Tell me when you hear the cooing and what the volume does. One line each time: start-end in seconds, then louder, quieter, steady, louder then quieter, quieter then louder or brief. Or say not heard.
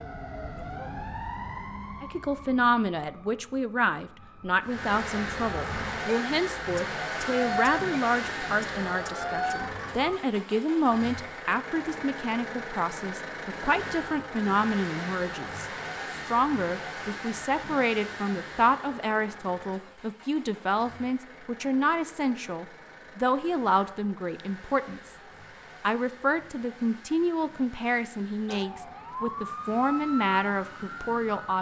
not heard.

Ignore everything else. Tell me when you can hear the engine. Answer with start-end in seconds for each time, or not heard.
4.6-31.5.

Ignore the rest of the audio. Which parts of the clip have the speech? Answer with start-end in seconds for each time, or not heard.
2.0-25.1, 25.8-31.5.